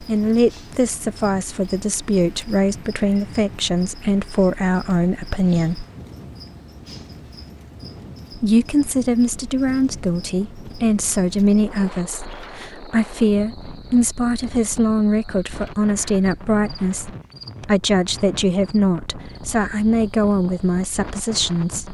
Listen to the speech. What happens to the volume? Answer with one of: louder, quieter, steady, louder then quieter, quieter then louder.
steady.